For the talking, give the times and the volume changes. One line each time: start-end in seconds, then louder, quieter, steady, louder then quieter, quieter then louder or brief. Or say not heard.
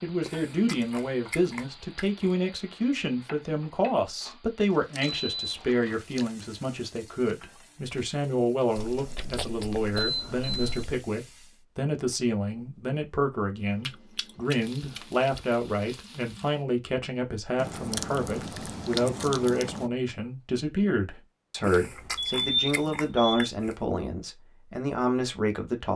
0.0-25.9 steady.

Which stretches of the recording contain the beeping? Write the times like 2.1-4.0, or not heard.
5.1-5.6, 9.9-10.8, 21.7-23.2.